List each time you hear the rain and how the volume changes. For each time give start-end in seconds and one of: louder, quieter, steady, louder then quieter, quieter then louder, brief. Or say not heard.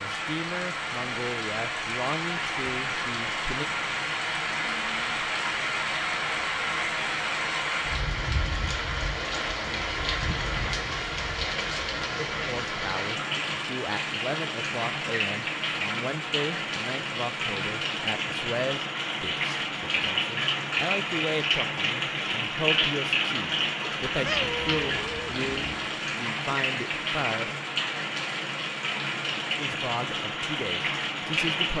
0.0-31.7 steady.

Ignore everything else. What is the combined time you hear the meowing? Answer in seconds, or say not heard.
2 s.